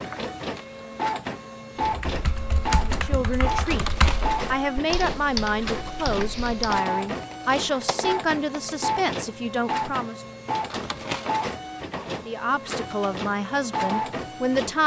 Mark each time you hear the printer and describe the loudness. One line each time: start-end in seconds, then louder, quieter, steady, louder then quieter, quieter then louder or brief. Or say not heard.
0.0-14.8 steady.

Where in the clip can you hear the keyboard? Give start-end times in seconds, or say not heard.
1.8-8.8.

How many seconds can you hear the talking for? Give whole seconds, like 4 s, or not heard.
10 s.